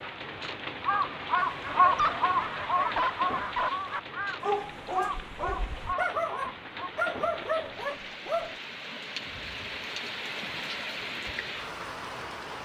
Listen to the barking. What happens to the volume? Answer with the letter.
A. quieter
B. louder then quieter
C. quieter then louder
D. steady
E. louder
D.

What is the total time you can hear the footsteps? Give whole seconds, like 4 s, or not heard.
not heard.